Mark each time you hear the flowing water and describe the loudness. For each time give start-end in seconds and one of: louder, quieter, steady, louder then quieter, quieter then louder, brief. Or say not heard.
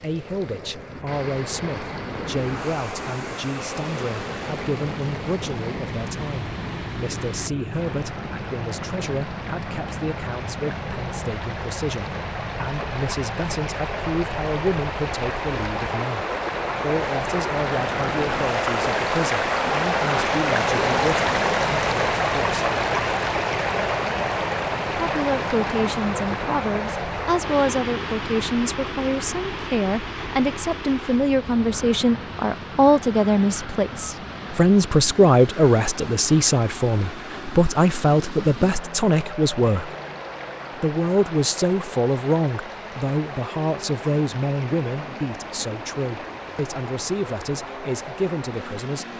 0.0-49.1 louder then quieter.